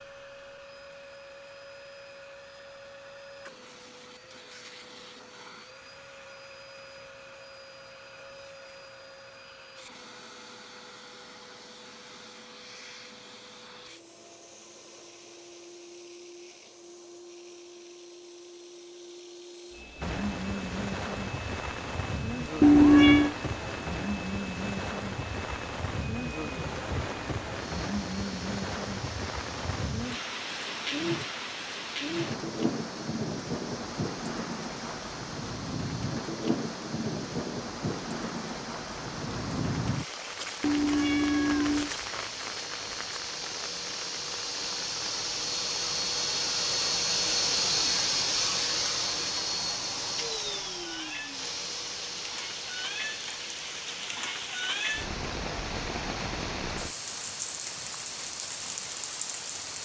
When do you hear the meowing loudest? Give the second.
23 s.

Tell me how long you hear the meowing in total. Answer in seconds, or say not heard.
2 s.